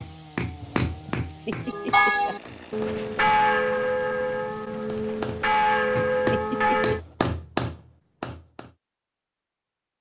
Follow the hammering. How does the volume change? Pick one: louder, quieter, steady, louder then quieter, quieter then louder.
quieter then louder.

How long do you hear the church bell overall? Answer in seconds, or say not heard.
5 s.